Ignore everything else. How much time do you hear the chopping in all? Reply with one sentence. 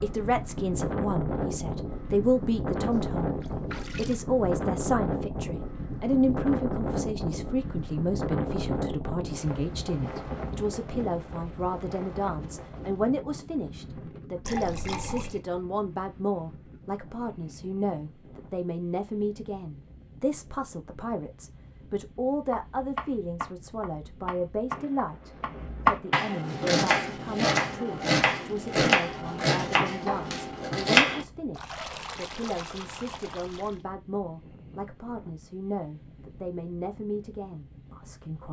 The chopping can be heard for 9 seconds in total.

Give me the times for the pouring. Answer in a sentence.
The pouring can be heard from 2.8 to 4.2 s, from 14.4 to 15.4 s and from 31.5 to 33.8 s.